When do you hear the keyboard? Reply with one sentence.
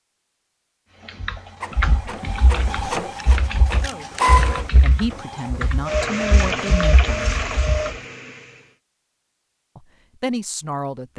The keyboard can be heard from 1.1 to 8.0 s.